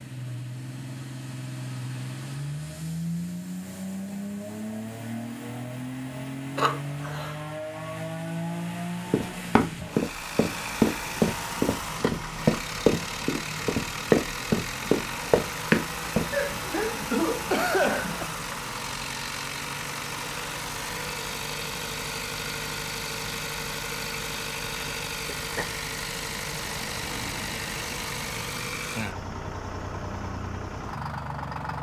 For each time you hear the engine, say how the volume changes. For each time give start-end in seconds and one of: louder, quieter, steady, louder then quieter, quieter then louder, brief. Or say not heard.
0.0-31.7 steady.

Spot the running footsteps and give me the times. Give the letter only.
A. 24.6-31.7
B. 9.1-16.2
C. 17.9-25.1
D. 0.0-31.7
B.